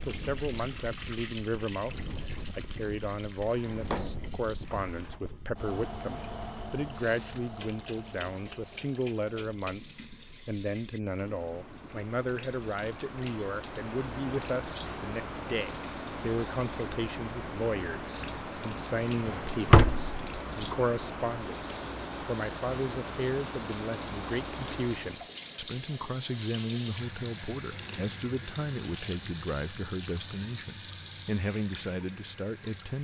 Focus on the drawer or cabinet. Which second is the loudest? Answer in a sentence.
The loudest moment of the drawer or cabinet is at 20 seconds.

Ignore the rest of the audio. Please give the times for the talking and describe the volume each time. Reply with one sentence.
You can hear the talking from 0.0 to 32.9 s, at a steady volume.